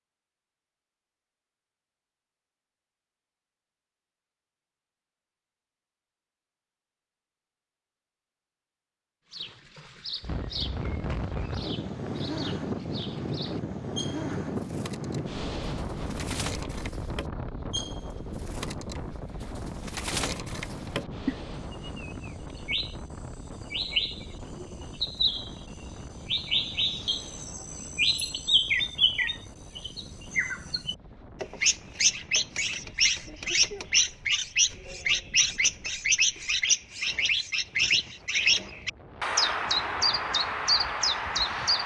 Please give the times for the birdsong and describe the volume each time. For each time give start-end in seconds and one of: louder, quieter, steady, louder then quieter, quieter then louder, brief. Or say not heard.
9.3-41.8 louder.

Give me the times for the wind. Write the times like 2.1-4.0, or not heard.
10.2-41.8.